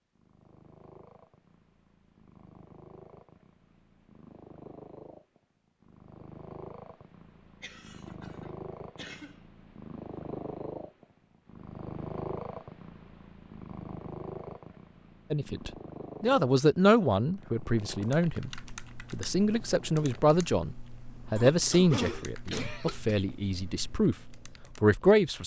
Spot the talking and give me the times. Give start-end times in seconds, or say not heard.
15.3-18.5, 19.1-24.1, 24.8-25.4.